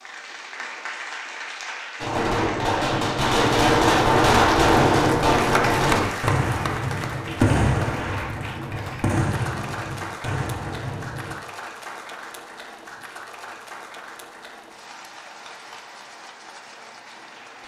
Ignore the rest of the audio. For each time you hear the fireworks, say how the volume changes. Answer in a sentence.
The fireworks can be heard from 2.0 to 11.3 s, getting quieter.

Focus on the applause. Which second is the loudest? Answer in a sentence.
The volume of the applause peaks at 6 seconds.